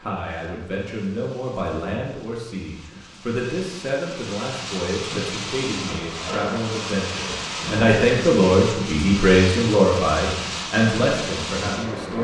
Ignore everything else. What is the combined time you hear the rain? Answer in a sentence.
You can hear the rain for 12 seconds altogether.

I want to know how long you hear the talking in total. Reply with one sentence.
The talking can be heard for 12 seconds in total.